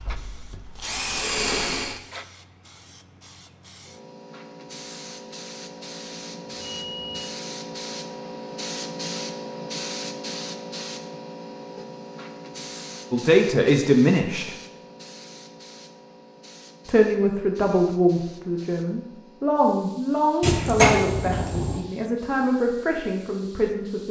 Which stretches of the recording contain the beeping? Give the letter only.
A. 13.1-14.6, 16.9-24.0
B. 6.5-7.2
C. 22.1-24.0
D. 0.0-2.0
B.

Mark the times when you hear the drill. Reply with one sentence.
The drill can be heard from 0.0 to 2.0 s.